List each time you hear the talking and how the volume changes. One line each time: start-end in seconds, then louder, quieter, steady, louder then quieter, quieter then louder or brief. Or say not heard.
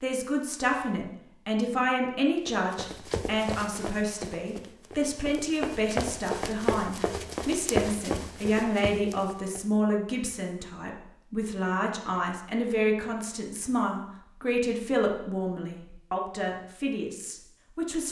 0.0-18.0 steady.